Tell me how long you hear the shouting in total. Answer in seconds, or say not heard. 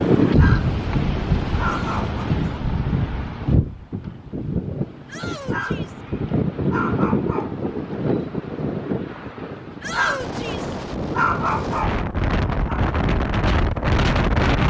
3 s.